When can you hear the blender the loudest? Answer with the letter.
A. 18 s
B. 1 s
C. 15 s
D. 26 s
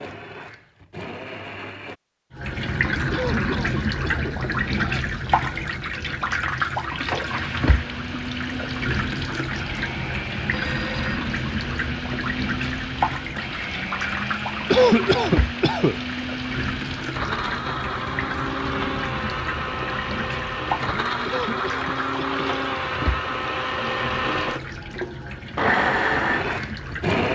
D.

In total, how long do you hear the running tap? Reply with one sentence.
The running tap can be heard for 25 seconds in total.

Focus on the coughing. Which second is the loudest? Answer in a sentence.
The loudest moment of the coughing is at 15 seconds.